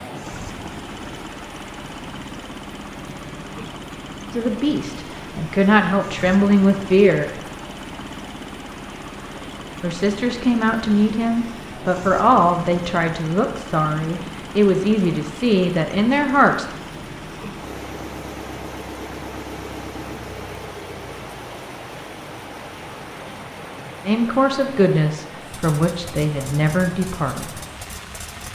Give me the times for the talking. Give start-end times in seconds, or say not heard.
4.3-7.3, 9.8-16.6, 24.1-27.6.